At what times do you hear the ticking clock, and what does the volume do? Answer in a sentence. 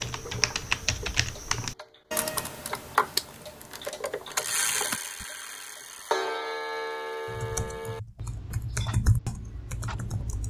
The ticking clock can be heard from 0.0 to 10.4 s, getting louder then quieter.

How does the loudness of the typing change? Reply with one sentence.
The volume of the typing goes down, then up.